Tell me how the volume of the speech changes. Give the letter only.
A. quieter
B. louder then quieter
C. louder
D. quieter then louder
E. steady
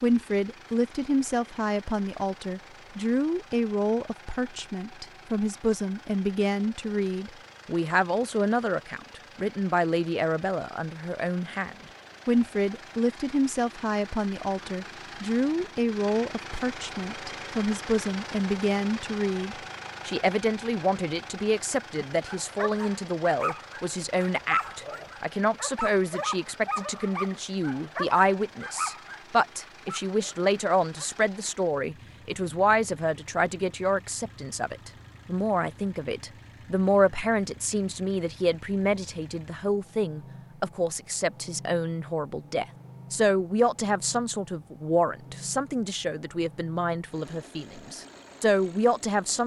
E.